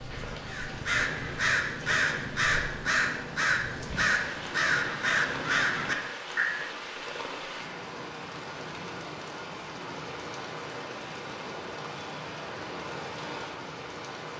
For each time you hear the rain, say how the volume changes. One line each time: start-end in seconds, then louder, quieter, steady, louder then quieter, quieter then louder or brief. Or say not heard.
0.0-14.3 steady.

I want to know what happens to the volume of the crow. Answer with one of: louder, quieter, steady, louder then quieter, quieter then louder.
steady.